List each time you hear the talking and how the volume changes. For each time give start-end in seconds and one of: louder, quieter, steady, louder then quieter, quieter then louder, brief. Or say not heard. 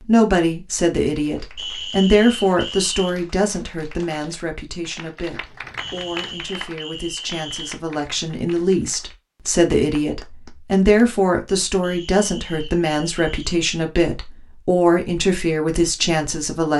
0.0-16.7 quieter then louder.